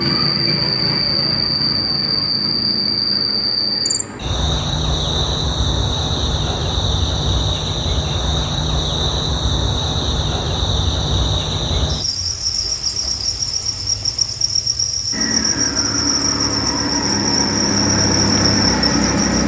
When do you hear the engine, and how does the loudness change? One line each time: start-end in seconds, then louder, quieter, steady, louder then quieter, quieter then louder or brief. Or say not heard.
0.0-4.2 quieter
15.1-19.4 louder.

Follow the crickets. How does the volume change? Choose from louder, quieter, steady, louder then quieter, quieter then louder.
steady.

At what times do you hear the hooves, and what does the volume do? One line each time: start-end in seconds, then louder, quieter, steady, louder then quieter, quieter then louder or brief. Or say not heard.
not heard.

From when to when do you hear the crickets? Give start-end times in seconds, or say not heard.
0.0-19.4.